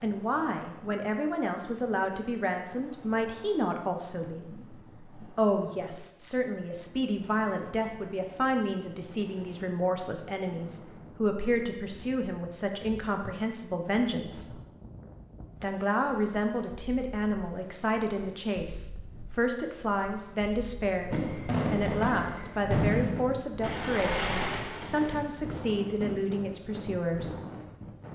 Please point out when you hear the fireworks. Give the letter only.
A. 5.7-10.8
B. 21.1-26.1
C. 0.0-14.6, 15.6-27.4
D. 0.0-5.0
B.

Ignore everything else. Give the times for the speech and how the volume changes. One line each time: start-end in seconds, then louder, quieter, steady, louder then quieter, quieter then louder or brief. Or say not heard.
0.0-14.6 steady
15.6-27.4 steady.